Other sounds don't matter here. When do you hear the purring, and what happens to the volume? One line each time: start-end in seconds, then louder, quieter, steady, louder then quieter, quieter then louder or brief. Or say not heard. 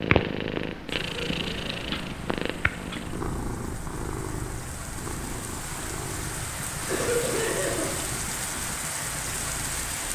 0.0-9.9 quieter.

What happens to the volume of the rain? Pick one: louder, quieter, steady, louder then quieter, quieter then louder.
louder.